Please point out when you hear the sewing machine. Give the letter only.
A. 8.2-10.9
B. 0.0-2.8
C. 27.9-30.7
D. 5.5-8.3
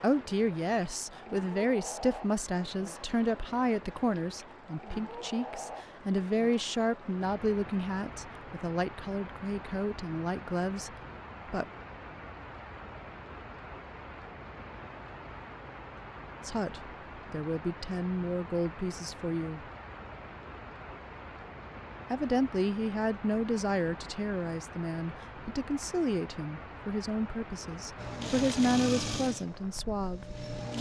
C.